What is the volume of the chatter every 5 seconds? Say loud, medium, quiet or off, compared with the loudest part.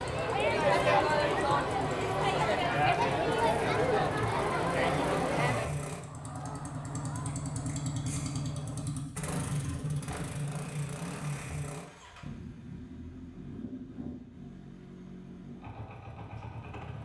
loud, medium, off, off.